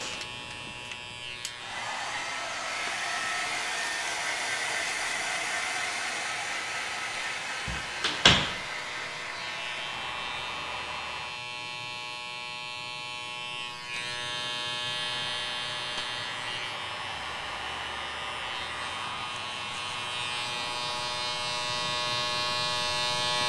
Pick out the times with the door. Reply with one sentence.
You can hear the door from 7.7 to 8.6 s.